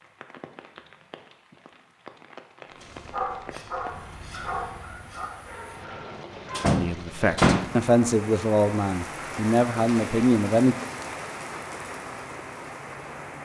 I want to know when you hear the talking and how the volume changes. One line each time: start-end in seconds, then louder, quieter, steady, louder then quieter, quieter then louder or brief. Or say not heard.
6.8-10.8 steady.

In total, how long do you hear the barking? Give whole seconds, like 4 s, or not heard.
4 s.